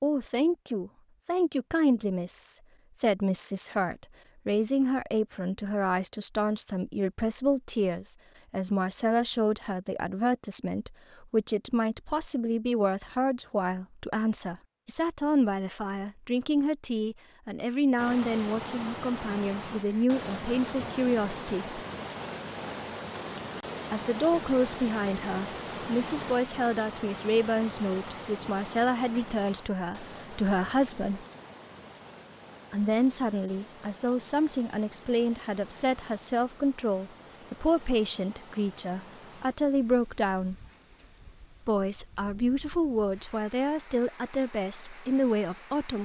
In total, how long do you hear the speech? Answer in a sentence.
You can hear the speech for 41 seconds altogether.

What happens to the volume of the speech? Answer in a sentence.
The volume of the speech stays about the same.